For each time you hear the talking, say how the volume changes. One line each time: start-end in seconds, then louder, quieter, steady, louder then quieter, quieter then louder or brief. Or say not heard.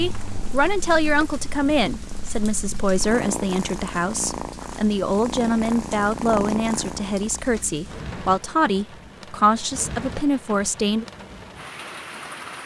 0.0-11.1 steady.